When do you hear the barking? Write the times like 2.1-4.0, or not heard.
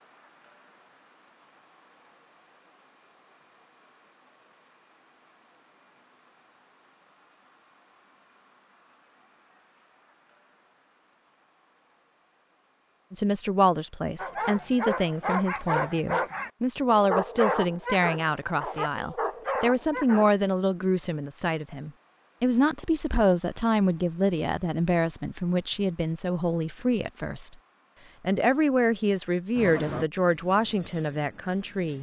14.2-20.3.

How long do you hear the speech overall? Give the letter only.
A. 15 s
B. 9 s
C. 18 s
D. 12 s
C.